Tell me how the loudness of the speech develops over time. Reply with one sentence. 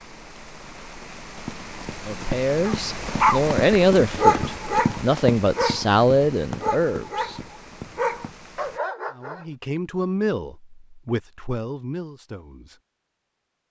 The volume of the speech goes down.